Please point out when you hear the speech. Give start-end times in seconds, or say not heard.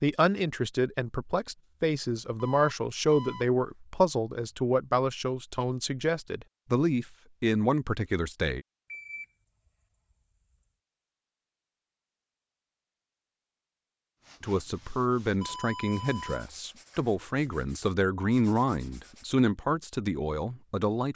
0.0-8.6, 14.4-21.1.